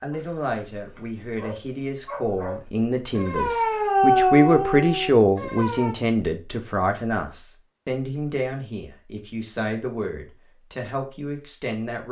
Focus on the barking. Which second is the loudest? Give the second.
4 s.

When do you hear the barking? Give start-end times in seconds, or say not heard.
0.1-6.0.